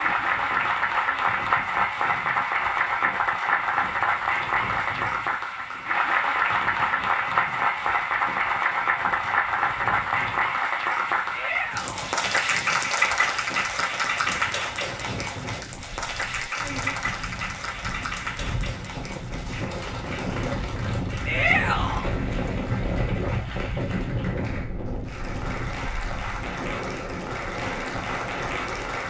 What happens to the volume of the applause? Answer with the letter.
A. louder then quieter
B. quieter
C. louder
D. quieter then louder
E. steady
B.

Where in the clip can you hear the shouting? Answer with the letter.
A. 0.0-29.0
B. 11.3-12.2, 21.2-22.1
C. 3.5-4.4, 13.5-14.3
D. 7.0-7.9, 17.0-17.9
B.